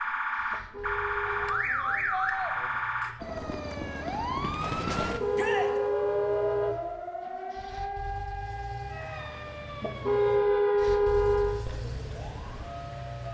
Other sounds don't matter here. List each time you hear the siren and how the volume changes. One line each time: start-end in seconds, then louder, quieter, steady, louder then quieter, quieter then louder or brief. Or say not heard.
0.0-13.2 quieter.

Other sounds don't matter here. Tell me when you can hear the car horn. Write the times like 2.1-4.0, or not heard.
0.5-1.6, 5.0-6.8, 9.8-11.7.